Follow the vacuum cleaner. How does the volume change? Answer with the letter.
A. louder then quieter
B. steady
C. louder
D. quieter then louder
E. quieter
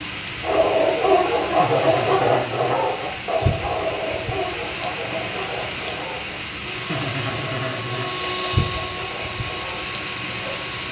A.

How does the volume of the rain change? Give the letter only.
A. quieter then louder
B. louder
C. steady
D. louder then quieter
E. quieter
C.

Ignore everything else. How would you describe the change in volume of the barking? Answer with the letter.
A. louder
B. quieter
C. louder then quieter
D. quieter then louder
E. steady
B.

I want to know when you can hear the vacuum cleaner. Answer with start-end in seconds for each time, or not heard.
6.6-10.8.